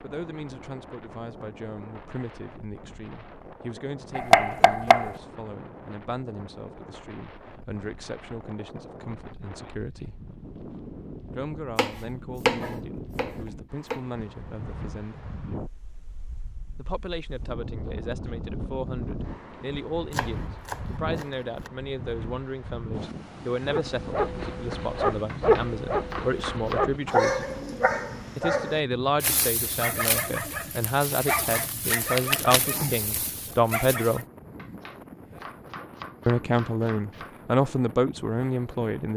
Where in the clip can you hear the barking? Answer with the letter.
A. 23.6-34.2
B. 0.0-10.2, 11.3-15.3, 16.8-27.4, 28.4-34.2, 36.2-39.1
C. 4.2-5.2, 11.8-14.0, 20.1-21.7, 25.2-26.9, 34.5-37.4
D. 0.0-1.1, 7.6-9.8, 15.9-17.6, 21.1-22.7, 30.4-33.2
A.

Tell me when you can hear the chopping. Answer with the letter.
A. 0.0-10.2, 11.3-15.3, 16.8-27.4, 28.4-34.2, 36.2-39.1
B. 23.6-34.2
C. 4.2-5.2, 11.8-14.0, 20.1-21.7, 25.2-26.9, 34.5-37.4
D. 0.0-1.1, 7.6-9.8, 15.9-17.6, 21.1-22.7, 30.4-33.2
C.